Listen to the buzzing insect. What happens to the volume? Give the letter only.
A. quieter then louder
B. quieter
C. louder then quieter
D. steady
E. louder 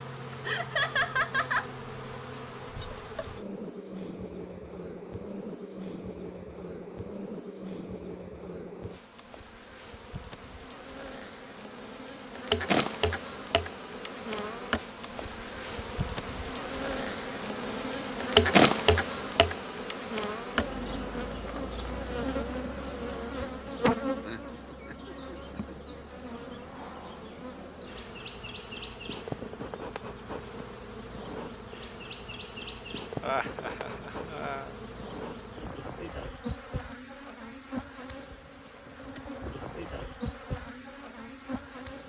C.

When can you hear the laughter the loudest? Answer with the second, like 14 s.
1 s.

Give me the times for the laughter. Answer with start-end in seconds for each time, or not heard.
0.5-1.7, 24.2-25.9, 33.2-34.6.